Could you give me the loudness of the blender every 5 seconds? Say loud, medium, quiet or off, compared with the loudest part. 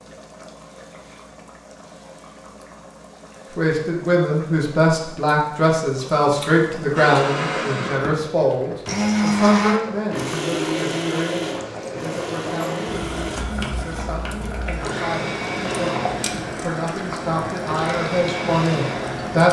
off, loud, medium, medium.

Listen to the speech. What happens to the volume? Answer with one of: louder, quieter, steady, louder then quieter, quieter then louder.
quieter then louder.